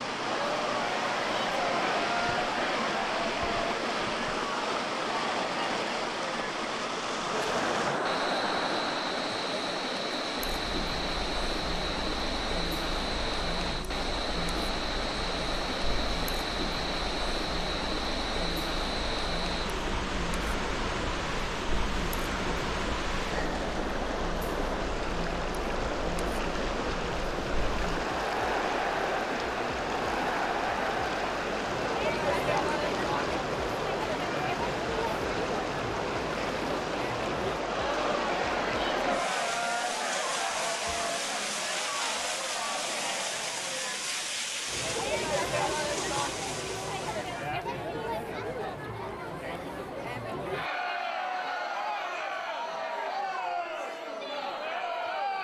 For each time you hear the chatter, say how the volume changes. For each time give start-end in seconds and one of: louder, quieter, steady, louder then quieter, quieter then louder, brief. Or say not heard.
0.1-55.3 quieter then louder.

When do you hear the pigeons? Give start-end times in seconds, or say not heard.
not heard.